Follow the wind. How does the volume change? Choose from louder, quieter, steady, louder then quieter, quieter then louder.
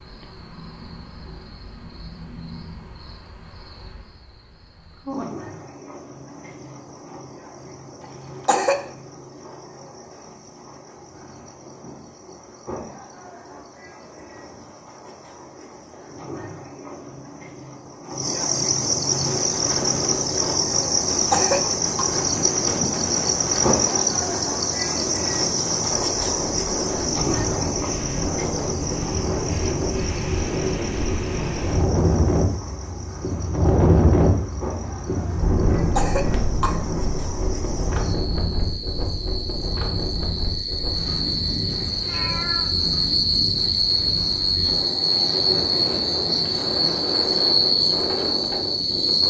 louder then quieter.